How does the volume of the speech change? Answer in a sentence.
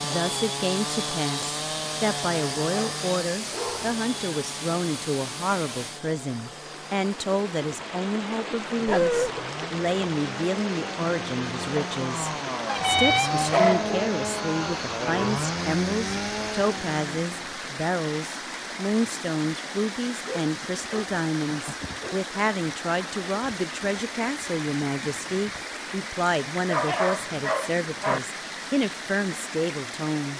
The volume of the speech stays about the same.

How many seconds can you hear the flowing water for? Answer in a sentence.
You can hear the flowing water for 30 seconds altogether.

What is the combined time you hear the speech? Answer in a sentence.
The speech can be heard for 30 seconds in total.